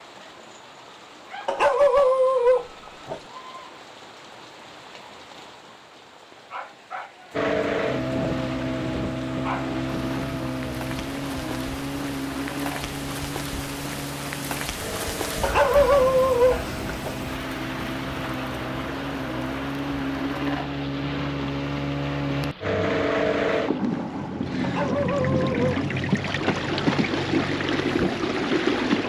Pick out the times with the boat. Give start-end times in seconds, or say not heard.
7.3-29.0.